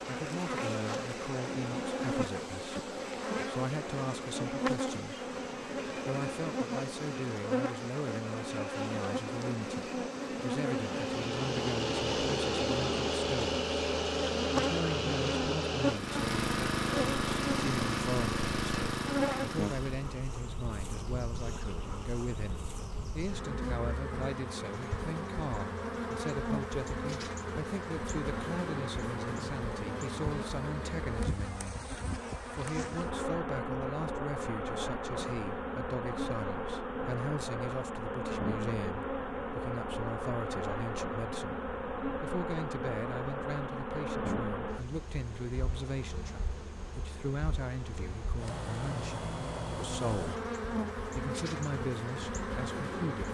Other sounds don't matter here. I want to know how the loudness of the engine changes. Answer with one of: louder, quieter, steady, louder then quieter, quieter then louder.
steady.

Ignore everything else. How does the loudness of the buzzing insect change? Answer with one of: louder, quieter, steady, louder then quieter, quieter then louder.
steady.